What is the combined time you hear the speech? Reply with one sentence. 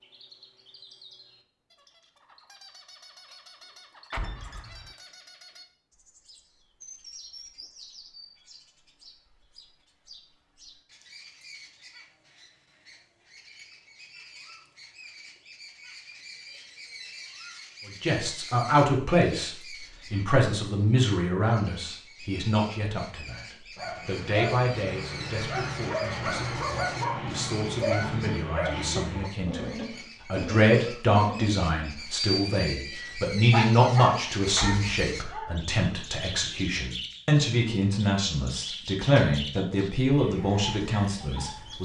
The speech can be heard for 24 seconds in total.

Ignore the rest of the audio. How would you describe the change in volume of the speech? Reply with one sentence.
The volume of the speech goes down, then up.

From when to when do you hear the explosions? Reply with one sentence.
You can hear the explosions from 4.1 to 5.0 s and from 34.5 to 35.4 s.